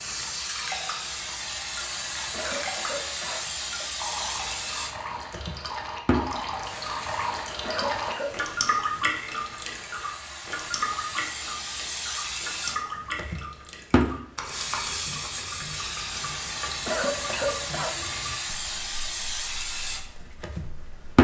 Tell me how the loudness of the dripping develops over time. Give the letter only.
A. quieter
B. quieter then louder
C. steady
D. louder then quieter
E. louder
D.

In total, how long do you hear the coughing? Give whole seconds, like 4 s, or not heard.
3 s.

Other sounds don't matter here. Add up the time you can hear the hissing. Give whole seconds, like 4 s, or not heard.
21 s.